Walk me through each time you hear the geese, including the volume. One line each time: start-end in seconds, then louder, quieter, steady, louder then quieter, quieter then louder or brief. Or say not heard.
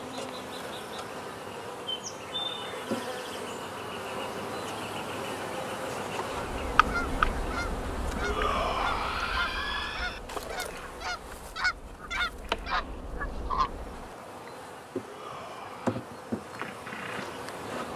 6.5-14.1 quieter then louder.